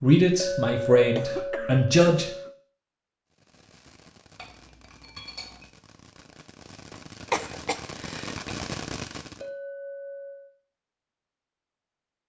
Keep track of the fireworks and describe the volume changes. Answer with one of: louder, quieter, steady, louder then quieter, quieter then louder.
louder.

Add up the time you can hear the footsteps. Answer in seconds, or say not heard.
not heard.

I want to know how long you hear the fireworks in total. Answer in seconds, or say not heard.
6 s.